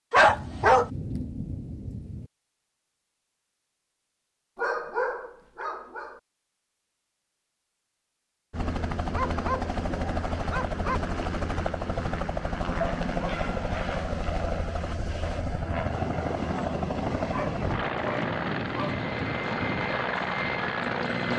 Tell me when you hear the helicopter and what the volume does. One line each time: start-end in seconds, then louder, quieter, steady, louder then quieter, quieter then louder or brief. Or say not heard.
8.5-21.3 steady.